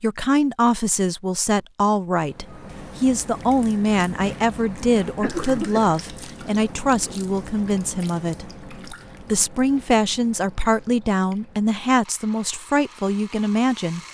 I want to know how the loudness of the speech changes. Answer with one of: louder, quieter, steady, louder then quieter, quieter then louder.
steady.